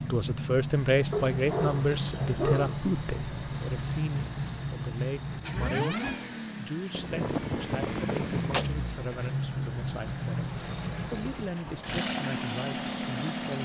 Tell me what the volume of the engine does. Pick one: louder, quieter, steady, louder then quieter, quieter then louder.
steady.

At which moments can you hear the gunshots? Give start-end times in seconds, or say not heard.
6.9-8.7.